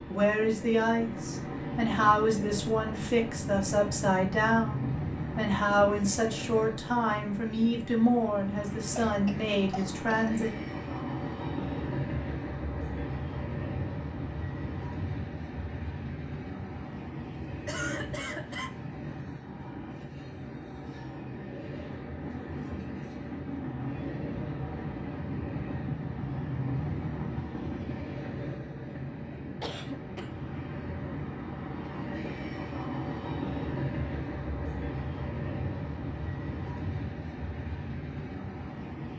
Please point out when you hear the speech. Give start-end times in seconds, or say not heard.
0.1-10.5.